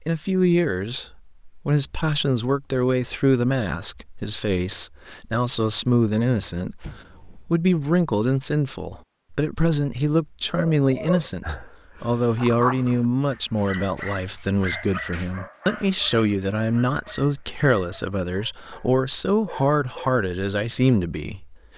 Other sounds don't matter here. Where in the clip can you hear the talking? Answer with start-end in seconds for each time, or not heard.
0.1-21.7.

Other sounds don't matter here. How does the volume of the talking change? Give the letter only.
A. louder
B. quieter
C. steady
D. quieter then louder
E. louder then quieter
C.